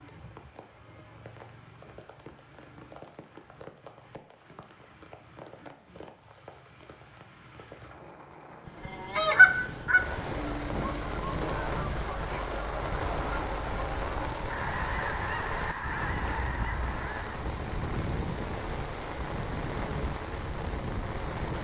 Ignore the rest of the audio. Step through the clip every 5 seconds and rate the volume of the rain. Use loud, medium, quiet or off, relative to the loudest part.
quiet, quiet, loud, loud, loud.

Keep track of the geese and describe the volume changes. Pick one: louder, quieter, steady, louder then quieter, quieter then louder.
quieter.